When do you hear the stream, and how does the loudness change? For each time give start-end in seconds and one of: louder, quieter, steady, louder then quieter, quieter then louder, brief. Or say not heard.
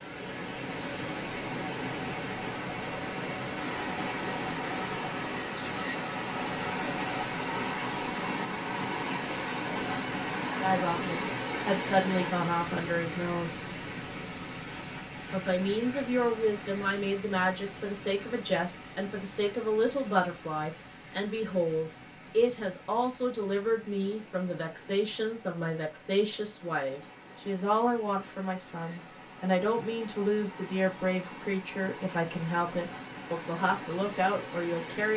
0.0-35.1 quieter then louder.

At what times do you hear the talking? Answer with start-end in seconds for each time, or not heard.
10.4-13.8, 15.3-35.1.